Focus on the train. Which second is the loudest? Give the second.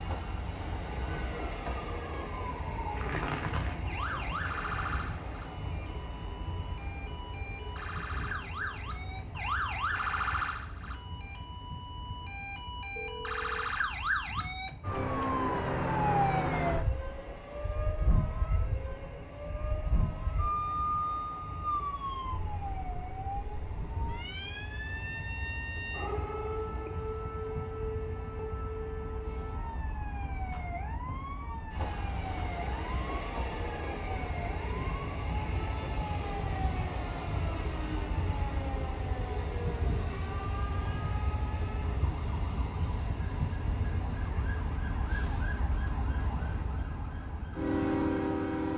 48 s.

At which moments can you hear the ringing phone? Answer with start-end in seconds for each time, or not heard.
12.9-13.7.